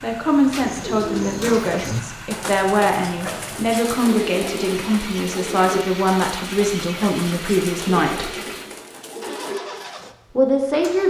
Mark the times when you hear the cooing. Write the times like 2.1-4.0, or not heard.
0.3-9.8.